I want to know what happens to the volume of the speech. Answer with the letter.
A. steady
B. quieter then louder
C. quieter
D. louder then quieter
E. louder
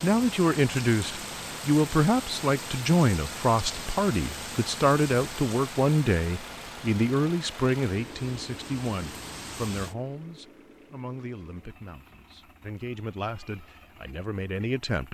C.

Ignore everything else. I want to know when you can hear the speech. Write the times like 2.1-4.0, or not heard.
0.0-15.1.